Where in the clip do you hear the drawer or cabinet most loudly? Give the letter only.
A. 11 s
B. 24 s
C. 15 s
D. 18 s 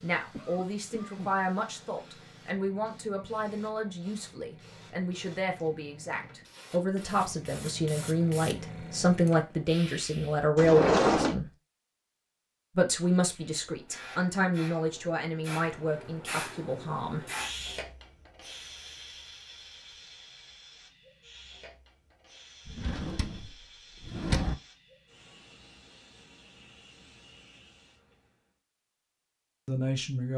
A.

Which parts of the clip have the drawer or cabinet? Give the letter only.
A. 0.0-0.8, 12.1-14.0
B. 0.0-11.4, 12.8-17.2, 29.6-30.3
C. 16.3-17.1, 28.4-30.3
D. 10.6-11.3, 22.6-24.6
D.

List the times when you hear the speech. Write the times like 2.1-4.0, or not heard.
0.0-11.4, 12.8-17.2, 29.6-30.3.